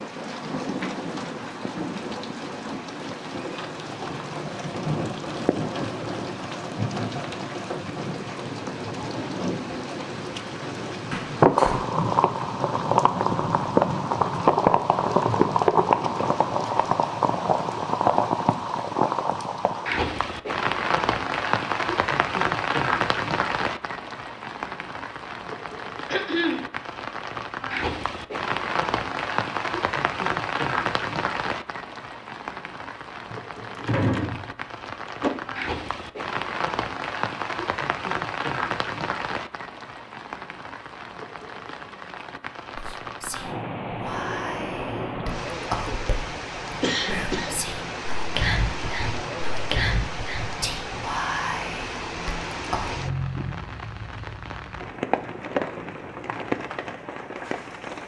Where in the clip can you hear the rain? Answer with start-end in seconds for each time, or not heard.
0.0-58.0.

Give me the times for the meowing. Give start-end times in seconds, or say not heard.
not heard.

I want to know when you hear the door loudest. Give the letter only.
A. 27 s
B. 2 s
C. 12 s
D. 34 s
D.